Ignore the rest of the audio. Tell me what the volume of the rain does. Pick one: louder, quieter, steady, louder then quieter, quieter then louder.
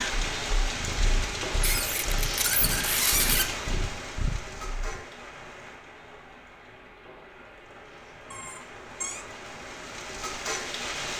quieter then louder.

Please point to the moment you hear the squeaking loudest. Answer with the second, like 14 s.
3 s.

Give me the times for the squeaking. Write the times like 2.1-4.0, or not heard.
1.6-3.5, 8.3-9.2.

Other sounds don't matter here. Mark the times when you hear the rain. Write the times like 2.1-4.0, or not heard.
0.0-11.1.